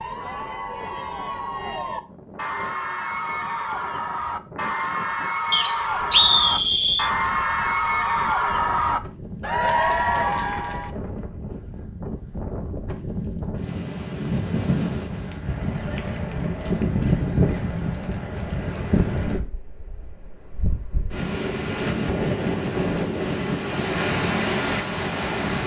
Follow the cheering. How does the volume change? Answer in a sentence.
The volume of the cheering goes up.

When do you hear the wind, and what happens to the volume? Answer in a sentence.
You can hear the wind from 0.0 to 25.6 s, getting louder.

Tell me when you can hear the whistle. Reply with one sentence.
The whistle can be heard from 5.5 to 7.1 s.